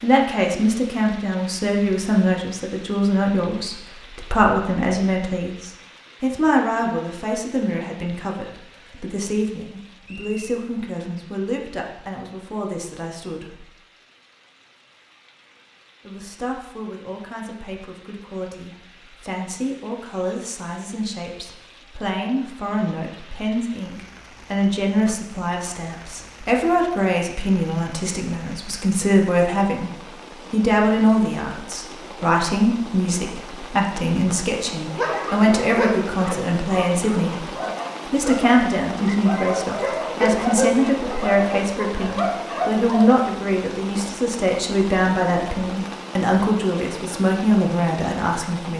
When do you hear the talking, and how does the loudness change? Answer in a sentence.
The talking can be heard from 0.0 to 13.7 s, getting quieter; from 16.1 to 29.9 s, getting louder; and from 30.5 to 48.7 s, at a steady volume.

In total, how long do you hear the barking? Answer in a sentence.
The barking can be heard for 8 seconds in total.